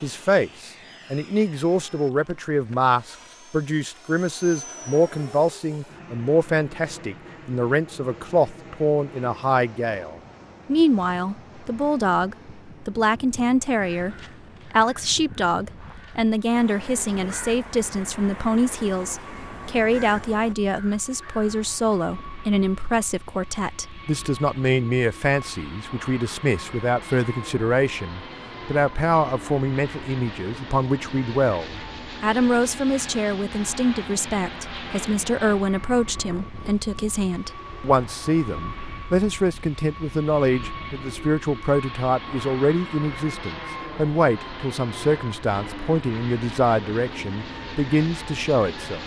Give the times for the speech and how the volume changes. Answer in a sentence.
You can hear the speech from 0.0 to 49.0 s, at a steady volume.